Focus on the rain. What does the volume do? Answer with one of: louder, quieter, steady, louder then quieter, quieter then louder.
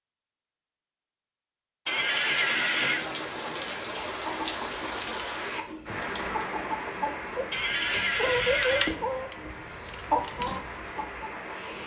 quieter.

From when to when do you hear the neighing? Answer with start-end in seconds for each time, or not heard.
1.9-3.0, 7.5-8.9.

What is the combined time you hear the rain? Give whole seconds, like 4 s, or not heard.
10 s.